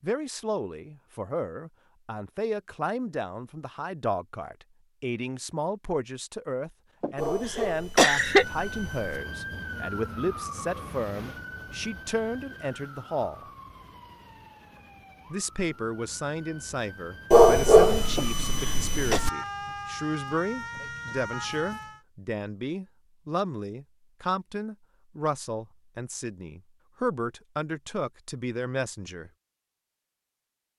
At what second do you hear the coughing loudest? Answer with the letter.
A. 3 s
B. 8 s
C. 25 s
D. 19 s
B.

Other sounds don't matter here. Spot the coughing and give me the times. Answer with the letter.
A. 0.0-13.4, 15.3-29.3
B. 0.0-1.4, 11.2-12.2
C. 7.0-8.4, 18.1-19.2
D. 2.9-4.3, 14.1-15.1
C.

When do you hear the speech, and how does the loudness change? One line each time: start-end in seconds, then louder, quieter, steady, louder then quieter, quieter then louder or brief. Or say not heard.
0.0-13.4 steady
15.3-29.3 steady.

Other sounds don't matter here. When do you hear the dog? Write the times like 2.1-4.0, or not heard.
7.2-9.2, 17.3-19.3.